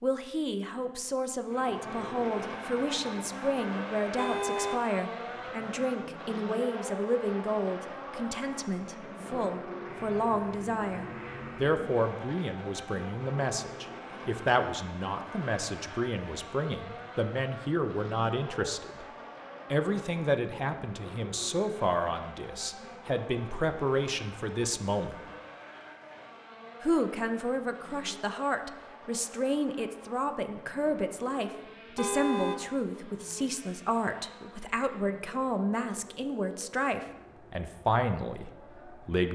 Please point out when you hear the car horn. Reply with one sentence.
You can hear the car horn from 4.2 to 4.8 s and from 31.9 to 32.6 s.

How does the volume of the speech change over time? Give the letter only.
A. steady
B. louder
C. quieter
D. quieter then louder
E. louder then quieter
A.